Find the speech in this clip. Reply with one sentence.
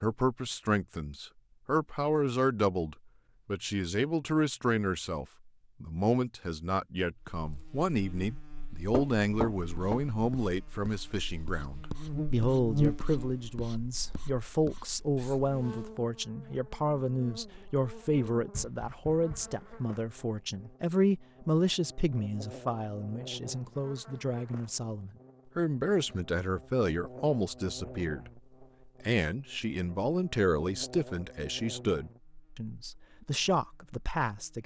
You can hear the speech from 0.0 to 34.6 s.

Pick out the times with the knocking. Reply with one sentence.
You can hear the knocking from 8.9 to 10.0 s and from 18.5 to 19.6 s.